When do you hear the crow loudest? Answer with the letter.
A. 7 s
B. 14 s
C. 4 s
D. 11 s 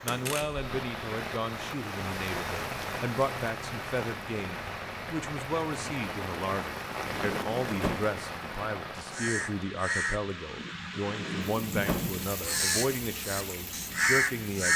B.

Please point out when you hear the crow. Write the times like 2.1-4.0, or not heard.
9.1-14.7.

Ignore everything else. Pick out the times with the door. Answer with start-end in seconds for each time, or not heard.
0.1-0.7, 6.9-8.1, 10.9-12.1.